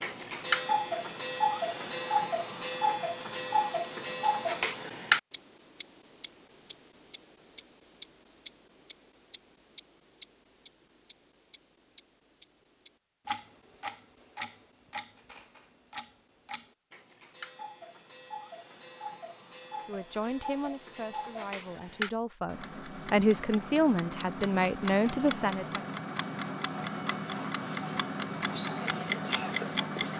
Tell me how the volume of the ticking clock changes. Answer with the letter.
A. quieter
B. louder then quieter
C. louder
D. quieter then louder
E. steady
D.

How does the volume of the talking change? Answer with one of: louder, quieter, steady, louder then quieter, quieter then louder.
louder.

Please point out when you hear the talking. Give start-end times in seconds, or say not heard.
19.9-25.9.